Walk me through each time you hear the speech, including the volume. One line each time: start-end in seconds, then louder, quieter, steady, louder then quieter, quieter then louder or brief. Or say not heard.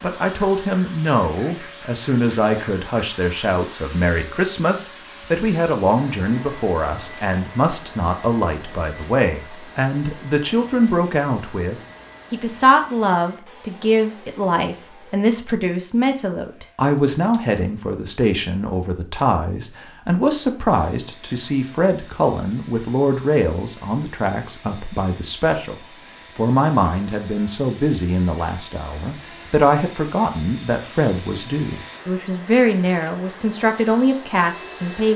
0.0-35.1 steady.